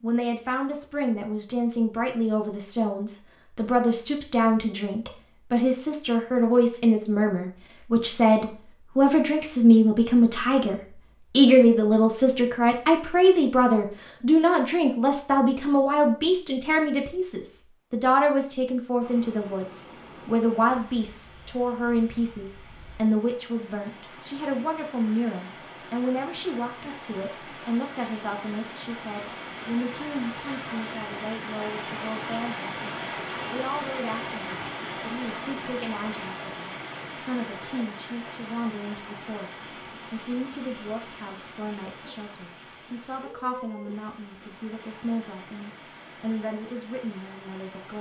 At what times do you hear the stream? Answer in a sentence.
You can hear the stream from 19.0 to 47.9 s.